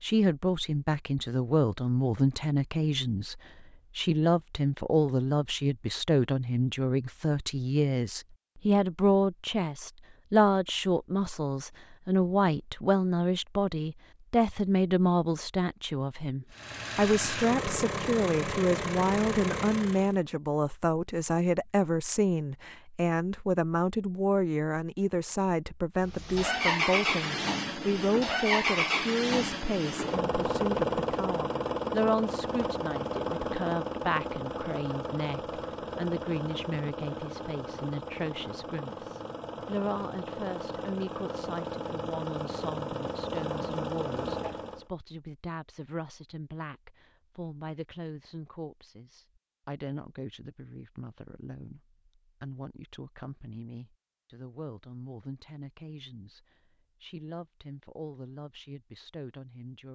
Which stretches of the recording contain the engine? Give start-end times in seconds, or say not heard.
16.5-20.1, 26.0-44.9.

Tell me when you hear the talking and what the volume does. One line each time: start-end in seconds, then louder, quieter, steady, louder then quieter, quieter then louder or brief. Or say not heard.
0.0-59.8 quieter.